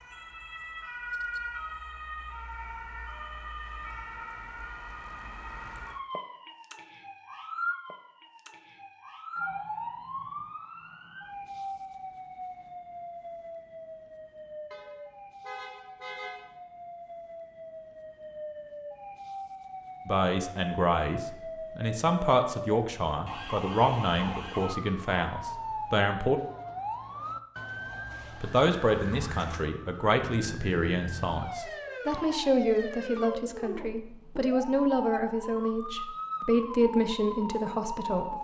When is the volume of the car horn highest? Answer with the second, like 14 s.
16 s.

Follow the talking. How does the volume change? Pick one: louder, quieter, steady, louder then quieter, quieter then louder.
steady.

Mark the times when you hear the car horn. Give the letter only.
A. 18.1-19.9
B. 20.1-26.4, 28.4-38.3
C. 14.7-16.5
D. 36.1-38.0
C.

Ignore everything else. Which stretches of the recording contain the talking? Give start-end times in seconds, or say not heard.
20.1-26.4, 28.4-38.3.